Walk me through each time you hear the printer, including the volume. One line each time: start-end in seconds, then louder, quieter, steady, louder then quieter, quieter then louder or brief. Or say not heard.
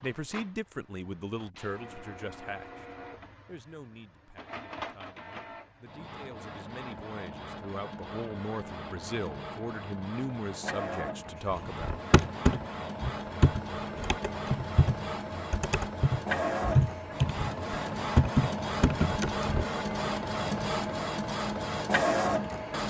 0.0-22.8 louder.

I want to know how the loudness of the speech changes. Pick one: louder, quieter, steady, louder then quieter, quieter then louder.
quieter then louder.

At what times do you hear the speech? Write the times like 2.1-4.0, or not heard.
0.0-11.9.